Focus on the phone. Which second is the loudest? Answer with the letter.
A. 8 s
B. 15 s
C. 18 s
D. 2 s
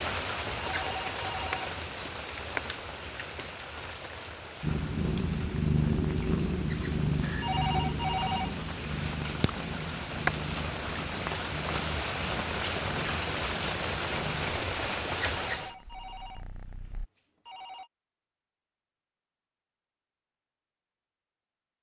A.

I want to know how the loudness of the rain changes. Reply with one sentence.
The volume of the rain goes down, then up.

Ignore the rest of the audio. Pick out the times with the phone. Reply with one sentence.
You can hear the phone from 0.7 to 1.6 s, from 7.4 to 8.6 s and from 15.6 to 17.9 s.